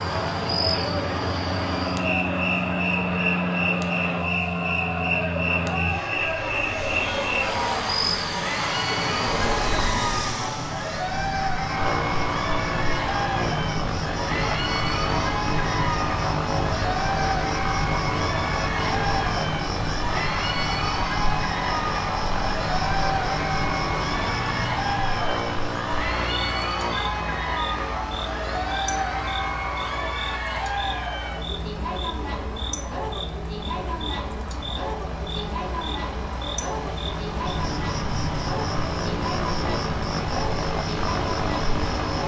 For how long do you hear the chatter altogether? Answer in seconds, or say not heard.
42 s.